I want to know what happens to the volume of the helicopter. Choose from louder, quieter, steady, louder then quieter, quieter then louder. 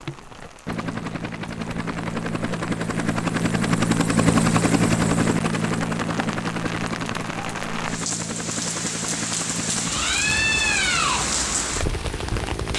louder then quieter.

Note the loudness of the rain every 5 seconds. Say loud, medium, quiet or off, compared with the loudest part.
quiet, medium, loud.